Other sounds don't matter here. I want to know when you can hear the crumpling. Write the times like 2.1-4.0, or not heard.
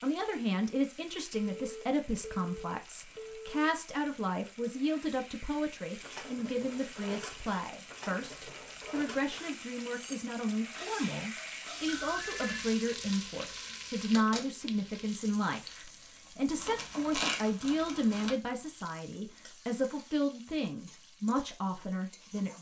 16.6-18.3.